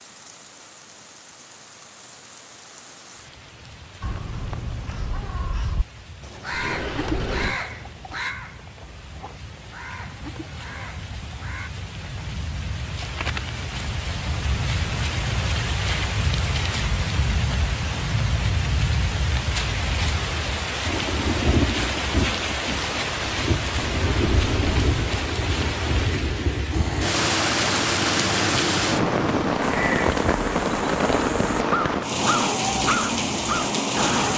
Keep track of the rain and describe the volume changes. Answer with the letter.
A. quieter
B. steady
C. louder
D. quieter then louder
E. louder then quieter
C.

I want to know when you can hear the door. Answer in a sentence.
The door can be heard from 6.5 to 7.6 s and from 23.8 to 24.9 s.